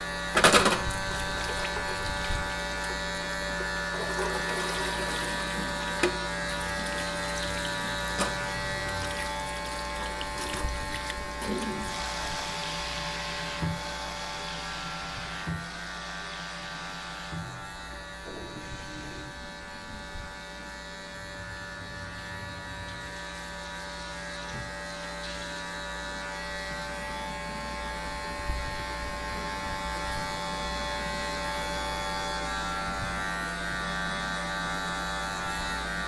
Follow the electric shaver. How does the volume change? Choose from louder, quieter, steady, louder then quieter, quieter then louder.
quieter then louder.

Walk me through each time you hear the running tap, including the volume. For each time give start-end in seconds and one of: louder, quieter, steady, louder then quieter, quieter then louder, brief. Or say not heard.
0.1-36.0 quieter.